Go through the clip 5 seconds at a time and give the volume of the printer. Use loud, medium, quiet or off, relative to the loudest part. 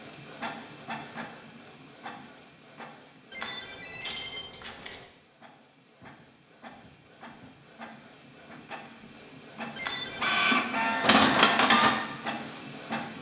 quiet, quiet, loud.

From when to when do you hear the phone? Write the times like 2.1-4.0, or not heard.
3.3-5.0, 9.8-10.4.